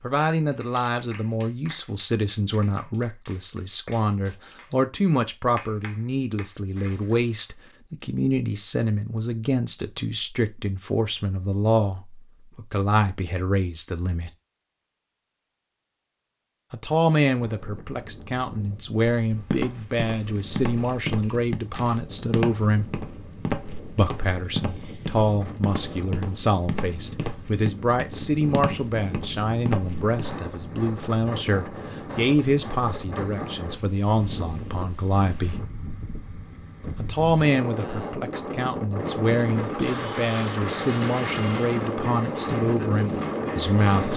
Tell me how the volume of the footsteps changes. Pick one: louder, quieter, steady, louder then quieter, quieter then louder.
steady.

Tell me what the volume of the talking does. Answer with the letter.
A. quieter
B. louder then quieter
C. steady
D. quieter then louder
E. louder
C.